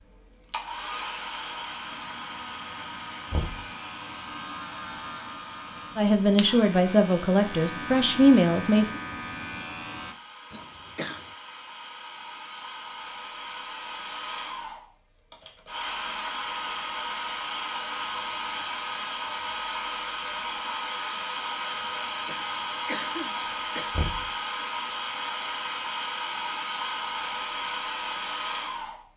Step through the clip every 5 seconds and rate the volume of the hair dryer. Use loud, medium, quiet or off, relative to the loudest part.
medium, quiet, medium, loud, loud, loud.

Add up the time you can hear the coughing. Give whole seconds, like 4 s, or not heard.
3 s.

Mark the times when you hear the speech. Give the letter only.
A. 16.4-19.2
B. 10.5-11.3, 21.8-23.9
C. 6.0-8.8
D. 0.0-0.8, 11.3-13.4
C.